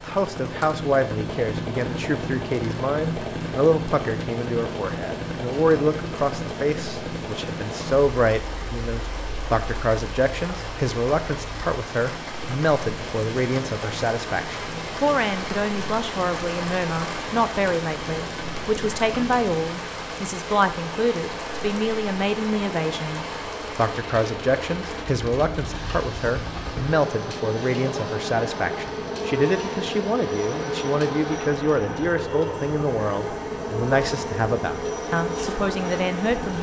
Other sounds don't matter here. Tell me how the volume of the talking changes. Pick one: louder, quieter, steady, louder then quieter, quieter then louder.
steady.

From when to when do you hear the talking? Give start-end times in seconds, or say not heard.
0.0-36.5.